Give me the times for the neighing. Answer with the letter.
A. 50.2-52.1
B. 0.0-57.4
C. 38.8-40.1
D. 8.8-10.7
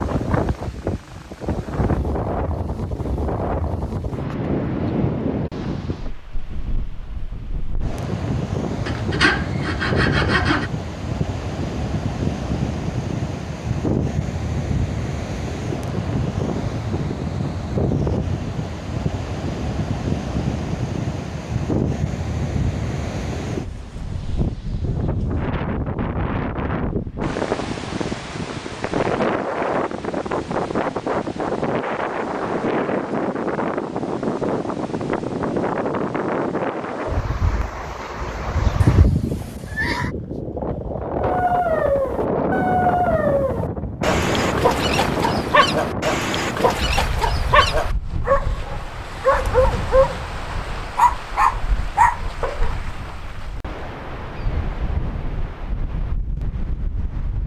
C.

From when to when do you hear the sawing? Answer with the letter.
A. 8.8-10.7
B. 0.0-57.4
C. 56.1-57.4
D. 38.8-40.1
A.